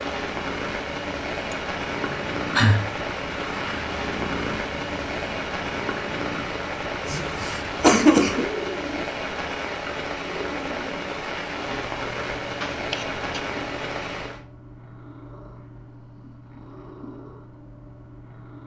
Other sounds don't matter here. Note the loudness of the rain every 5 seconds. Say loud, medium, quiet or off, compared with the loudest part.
loud, loud, loud, off.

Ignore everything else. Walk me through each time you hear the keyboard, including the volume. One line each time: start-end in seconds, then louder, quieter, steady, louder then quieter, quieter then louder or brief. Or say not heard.
not heard.